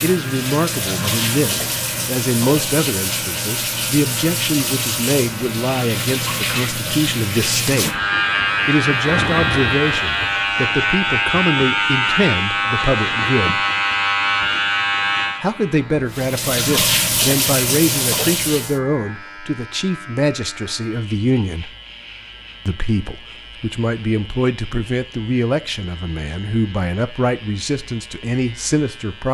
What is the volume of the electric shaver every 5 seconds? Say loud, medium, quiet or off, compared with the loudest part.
quiet, loud, loud, medium, quiet, quiet.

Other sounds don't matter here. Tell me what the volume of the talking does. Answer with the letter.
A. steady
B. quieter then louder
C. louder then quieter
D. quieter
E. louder
A.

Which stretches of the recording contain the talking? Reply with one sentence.
The talking can be heard from 0.0 to 8.0 s, from 8.7 to 13.6 s, from 15.4 to 21.8 s and from 22.6 to 29.2 s.